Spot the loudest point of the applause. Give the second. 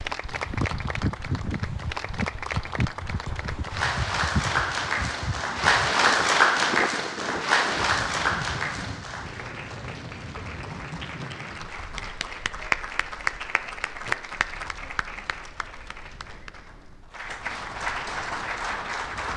6 s.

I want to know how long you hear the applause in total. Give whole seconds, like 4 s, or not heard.
19 s.